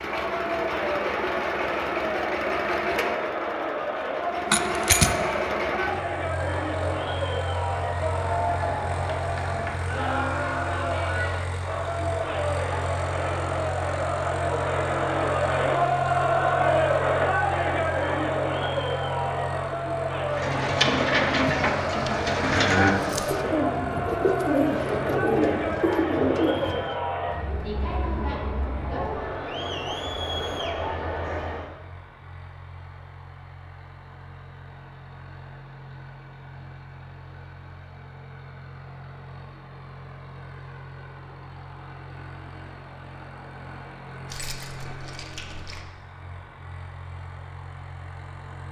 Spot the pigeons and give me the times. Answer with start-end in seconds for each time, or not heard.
20.3-26.9.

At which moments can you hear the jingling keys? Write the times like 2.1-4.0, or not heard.
4.5-5.2, 21.4-23.4, 44.2-45.9.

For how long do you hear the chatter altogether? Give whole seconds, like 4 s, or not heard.
32 s.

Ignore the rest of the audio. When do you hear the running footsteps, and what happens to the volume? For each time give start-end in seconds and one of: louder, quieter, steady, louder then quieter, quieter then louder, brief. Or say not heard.
not heard.